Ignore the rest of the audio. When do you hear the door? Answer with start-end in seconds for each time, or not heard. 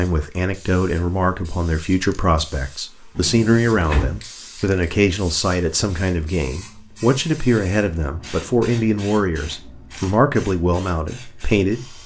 3.1-4.2.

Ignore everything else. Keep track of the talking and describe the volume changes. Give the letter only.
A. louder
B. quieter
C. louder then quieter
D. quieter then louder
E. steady
E.